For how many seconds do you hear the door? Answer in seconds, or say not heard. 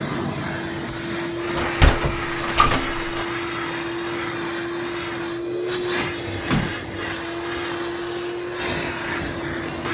2 s.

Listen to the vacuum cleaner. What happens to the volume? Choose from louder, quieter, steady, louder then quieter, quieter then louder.
steady.